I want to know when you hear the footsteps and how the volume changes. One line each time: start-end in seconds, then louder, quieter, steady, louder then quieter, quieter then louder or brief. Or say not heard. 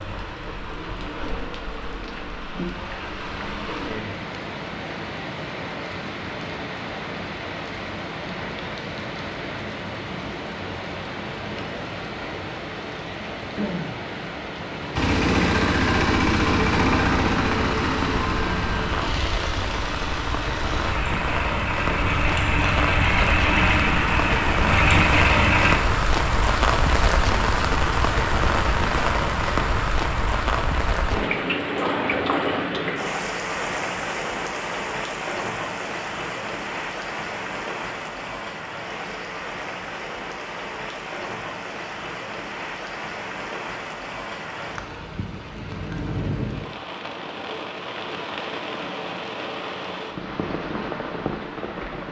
not heard.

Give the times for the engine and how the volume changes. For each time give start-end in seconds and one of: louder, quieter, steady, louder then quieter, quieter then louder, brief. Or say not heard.
14.9-25.8 quieter then louder.